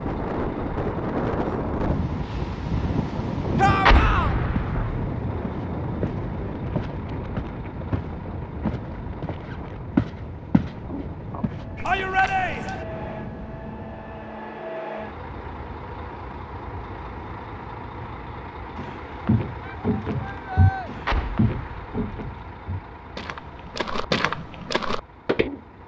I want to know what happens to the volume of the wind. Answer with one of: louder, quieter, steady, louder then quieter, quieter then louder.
quieter.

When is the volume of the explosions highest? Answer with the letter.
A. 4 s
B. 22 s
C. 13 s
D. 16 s
A.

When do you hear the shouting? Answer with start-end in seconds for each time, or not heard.
3.5-4.3, 11.8-12.8, 19.6-20.9.